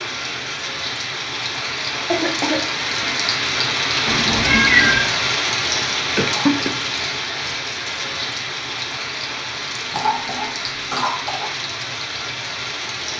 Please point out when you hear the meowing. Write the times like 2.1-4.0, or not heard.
4.0-5.1.